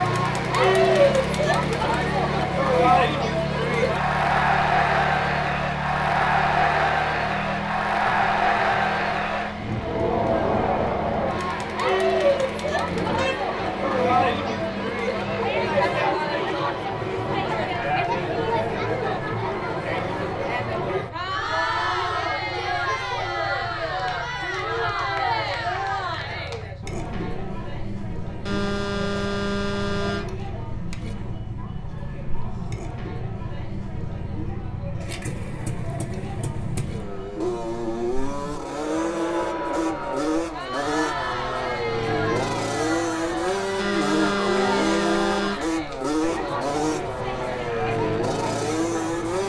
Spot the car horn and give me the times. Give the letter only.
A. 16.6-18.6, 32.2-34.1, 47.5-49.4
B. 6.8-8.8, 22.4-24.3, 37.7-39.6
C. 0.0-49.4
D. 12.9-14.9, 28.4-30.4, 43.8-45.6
D.